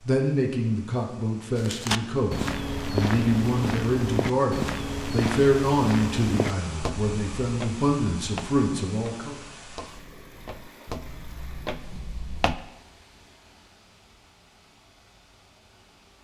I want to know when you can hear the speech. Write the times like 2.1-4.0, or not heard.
0.1-9.4.